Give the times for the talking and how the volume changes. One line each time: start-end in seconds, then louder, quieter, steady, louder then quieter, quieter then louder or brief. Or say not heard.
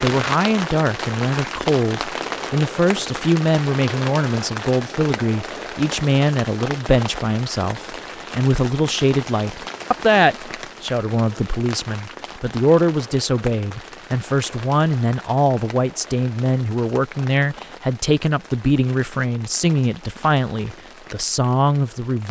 0.0-22.2 steady.